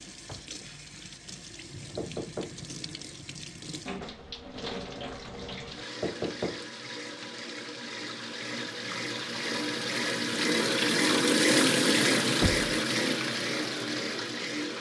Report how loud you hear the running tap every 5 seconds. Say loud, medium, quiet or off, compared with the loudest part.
quiet, medium, loud.